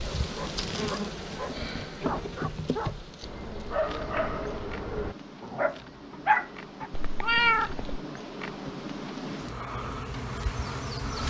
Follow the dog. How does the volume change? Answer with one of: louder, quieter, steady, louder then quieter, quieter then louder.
louder.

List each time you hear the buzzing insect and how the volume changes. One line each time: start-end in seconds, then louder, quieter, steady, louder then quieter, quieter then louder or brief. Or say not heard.
0.0-11.2 quieter then louder.